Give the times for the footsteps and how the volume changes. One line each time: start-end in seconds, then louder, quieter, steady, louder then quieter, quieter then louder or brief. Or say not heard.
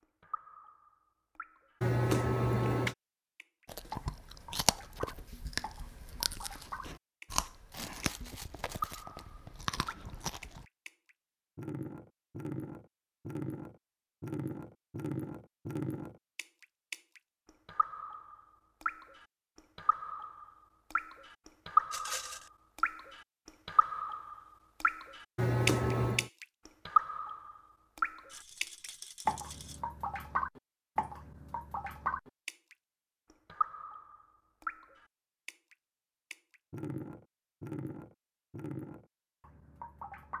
not heard.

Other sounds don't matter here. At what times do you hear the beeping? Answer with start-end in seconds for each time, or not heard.
1.8-3.0, 25.4-26.3.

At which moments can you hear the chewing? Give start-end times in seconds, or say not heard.
3.6-10.7.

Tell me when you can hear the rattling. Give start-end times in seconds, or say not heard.
7.7-9.1, 21.9-22.5, 28.3-29.8.